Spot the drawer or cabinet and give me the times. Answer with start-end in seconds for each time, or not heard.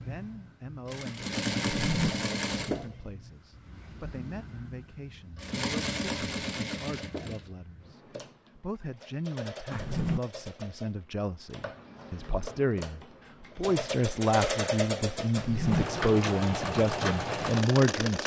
1.6-2.1, 9.7-10.2, 15.3-15.8.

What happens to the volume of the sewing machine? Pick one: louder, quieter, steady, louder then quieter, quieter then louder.
quieter then louder.